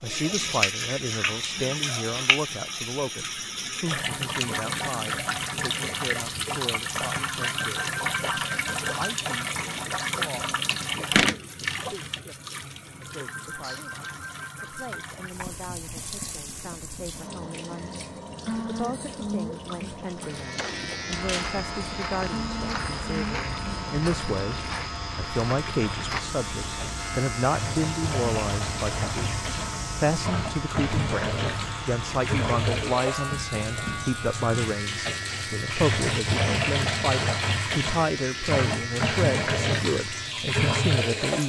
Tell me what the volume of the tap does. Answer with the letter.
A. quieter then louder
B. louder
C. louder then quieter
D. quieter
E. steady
A.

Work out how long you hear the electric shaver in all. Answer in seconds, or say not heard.
21 s.